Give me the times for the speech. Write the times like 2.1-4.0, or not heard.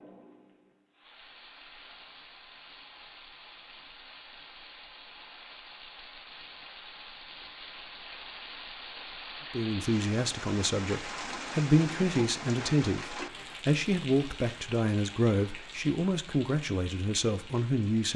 9.5-18.1.